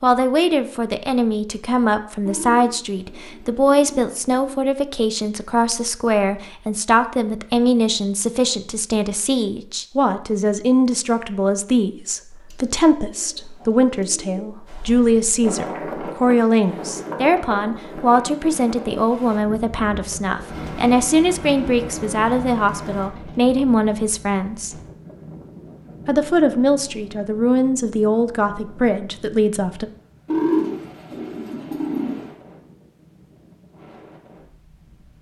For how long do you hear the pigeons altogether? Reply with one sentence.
The pigeons can be heard for 9 seconds in total.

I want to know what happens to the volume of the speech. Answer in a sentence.
The volume of the speech stays about the same.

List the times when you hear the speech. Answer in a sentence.
The speech can be heard from 0.0 to 24.8 s and from 26.1 to 29.9 s.